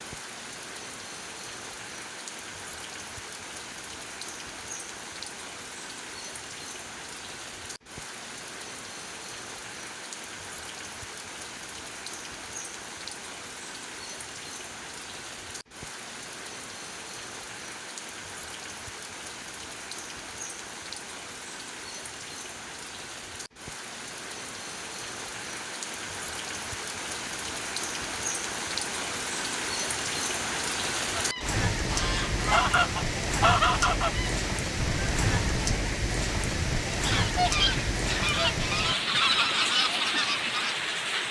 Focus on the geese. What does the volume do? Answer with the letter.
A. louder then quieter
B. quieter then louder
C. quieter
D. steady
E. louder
D.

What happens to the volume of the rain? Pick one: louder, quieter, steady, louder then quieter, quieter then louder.
louder.